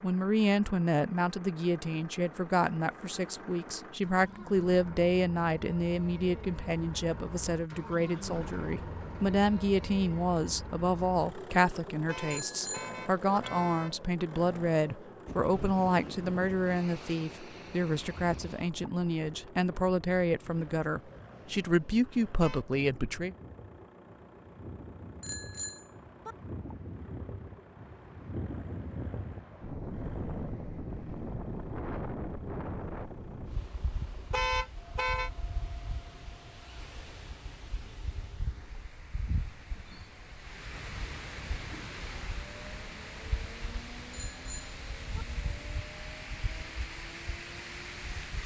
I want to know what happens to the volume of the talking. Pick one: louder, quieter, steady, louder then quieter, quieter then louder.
steady.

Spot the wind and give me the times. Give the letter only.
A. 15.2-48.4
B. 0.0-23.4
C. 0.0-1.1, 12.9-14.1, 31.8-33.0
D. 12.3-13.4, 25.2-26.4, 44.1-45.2
A.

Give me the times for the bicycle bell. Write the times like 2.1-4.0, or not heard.
12.3-13.4, 25.2-26.4, 44.1-45.2.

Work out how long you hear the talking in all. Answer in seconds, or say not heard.
23 s.